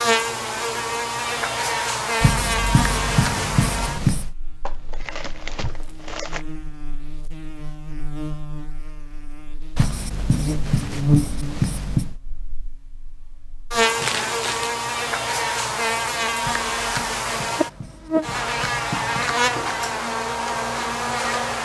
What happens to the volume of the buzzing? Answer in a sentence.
The loudness of the buzzing goes down, then up.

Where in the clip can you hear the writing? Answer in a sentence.
The writing can be heard from 2.2 to 4.3 s, from 9.8 to 12.2 s and from 16.4 to 19.2 s.